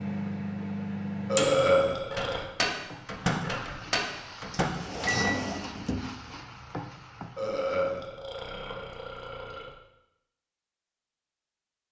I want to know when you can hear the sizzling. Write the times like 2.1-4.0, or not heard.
2.7-7.6.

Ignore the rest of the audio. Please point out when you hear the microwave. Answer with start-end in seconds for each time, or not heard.
0.0-5.3.